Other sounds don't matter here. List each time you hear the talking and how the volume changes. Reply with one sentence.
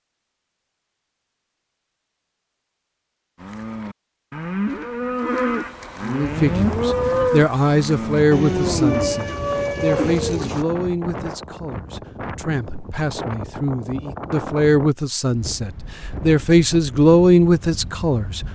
The talking can be heard from 6.0 to 18.4 s, getting quieter then louder.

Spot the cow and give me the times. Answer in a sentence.
The cow can be heard from 3.4 to 10.7 s.